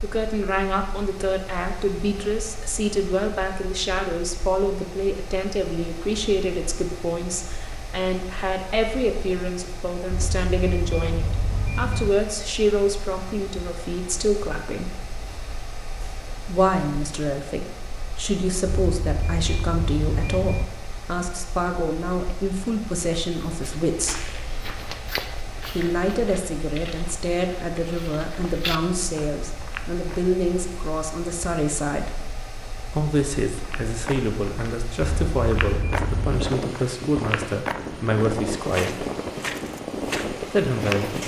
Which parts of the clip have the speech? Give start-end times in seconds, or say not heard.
0.0-14.9, 16.4-24.4, 25.7-32.2, 32.9-39.0, 40.4-41.2.